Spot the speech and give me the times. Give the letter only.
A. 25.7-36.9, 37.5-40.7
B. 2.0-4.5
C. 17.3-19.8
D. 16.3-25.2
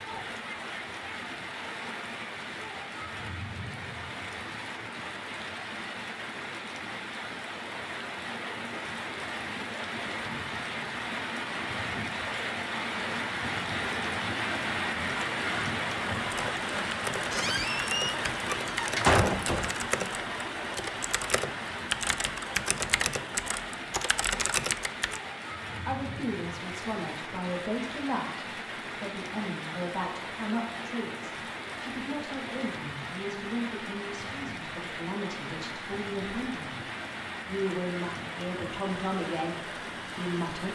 A.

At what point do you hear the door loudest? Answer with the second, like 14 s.
19 s.